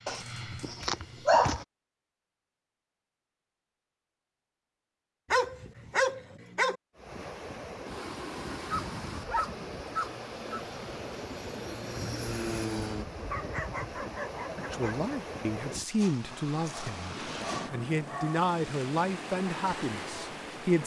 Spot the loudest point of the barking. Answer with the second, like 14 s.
1 s.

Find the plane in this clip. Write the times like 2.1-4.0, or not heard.
0.0-1.5, 10.1-13.1.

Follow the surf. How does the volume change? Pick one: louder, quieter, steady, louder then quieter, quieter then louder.
steady.